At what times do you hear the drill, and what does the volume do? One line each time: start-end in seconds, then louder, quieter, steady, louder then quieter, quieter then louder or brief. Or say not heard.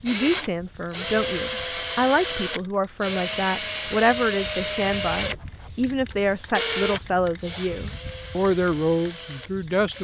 0.1-9.9 quieter.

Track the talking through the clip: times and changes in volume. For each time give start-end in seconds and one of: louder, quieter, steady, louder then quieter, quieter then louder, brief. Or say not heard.
0.0-9.9 steady.